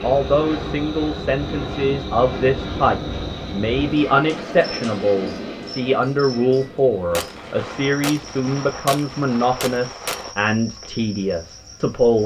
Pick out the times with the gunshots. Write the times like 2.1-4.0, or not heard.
7.1-10.3.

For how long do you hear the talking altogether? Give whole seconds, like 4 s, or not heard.
12 s.